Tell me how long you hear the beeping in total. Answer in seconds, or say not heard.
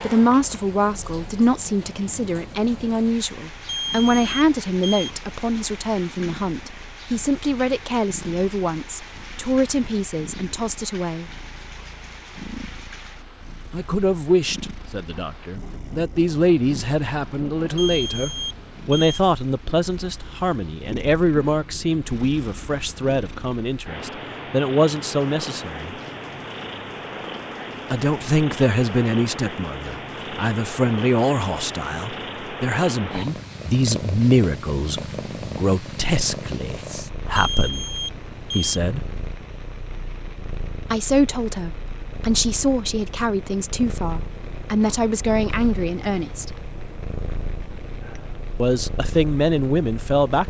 4 s.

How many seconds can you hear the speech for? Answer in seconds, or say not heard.
42 s.